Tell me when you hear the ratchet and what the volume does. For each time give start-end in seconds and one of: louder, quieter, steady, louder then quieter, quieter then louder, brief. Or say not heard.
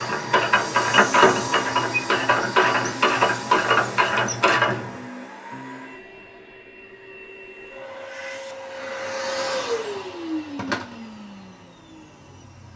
0.0-4.8 steady.